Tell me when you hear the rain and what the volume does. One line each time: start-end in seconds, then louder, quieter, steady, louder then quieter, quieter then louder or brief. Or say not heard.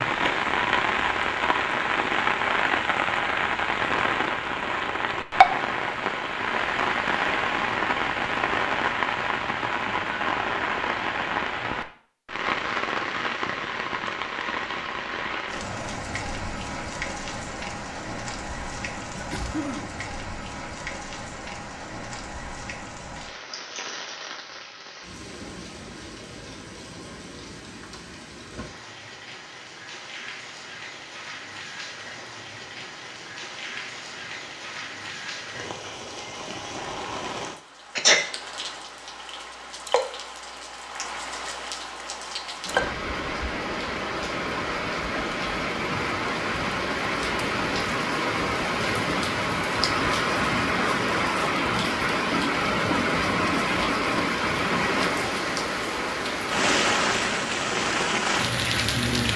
0.0-59.3 quieter then louder.